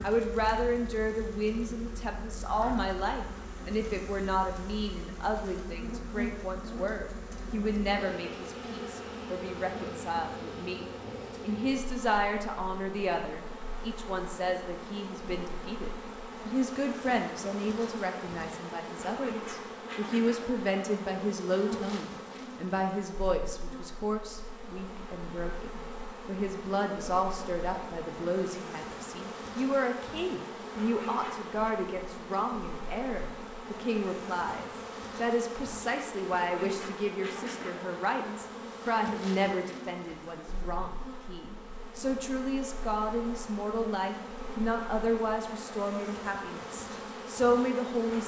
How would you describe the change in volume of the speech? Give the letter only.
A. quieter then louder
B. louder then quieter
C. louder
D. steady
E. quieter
D.